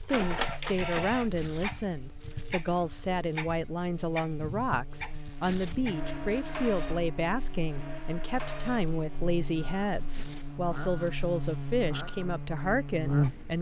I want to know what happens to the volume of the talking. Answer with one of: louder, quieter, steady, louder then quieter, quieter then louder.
steady.